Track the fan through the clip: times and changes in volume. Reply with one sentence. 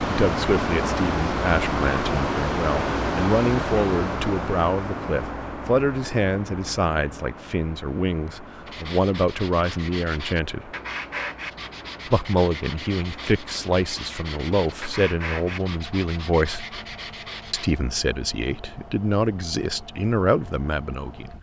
The fan can be heard from 0.0 to 21.3 s, getting quieter.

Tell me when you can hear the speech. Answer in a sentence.
You can hear the speech from 0.0 to 10.7 s, from 12.1 to 16.8 s and from 17.5 to 21.3 s.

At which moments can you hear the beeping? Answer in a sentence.
You can't hear the beeping here.